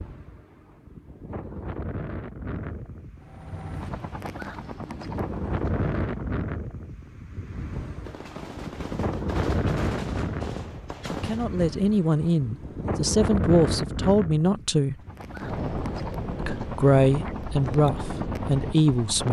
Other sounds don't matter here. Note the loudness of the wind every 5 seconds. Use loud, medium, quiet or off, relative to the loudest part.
medium, loud, loud, loud.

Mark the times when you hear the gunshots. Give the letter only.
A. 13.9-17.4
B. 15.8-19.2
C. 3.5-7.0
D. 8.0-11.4
D.